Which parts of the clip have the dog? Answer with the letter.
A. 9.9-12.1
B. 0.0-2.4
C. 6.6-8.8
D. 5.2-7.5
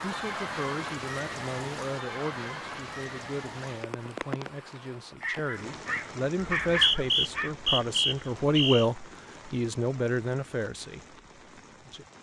D.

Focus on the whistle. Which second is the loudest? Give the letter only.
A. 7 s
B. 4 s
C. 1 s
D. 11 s
A.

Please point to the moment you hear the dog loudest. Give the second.
7 s.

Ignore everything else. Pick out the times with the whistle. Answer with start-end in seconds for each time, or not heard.
6.6-8.8.